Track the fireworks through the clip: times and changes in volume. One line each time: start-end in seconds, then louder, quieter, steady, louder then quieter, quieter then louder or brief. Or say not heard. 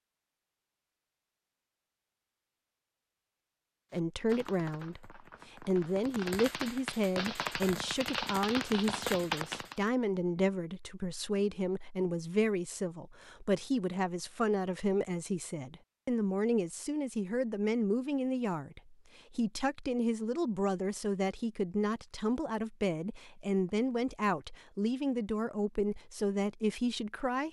3.9-9.9 louder.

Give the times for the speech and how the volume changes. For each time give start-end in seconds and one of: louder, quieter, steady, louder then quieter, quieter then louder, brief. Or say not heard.
3.9-27.4 steady.